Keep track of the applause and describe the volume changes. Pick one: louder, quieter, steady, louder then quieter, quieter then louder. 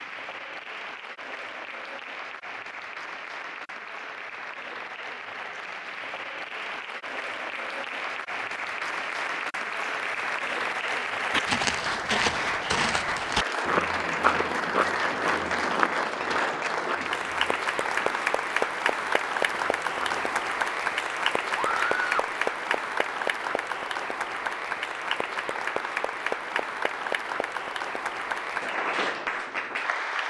louder.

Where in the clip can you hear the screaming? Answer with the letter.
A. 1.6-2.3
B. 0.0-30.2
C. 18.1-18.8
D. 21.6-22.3
D.